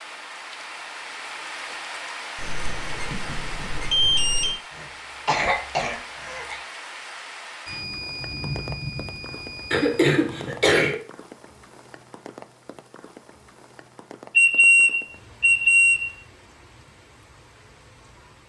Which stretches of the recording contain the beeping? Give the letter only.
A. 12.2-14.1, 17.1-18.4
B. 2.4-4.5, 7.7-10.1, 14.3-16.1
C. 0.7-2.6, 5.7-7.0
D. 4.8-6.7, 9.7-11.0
B.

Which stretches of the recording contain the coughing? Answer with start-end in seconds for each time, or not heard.
4.8-6.7, 9.7-11.0.